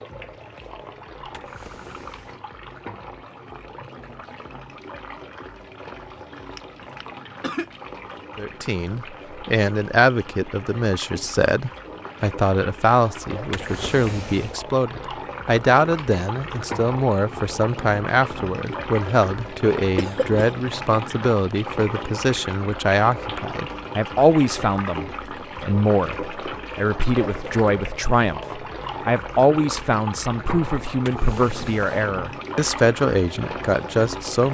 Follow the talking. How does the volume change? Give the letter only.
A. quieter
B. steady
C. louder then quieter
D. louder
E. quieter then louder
B.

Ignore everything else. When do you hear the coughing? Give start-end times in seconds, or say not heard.
6.5-7.7, 19.9-20.4.